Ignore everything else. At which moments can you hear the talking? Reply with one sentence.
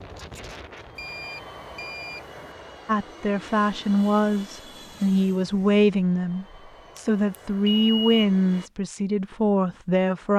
The talking can be heard from 2.9 to 10.3 s.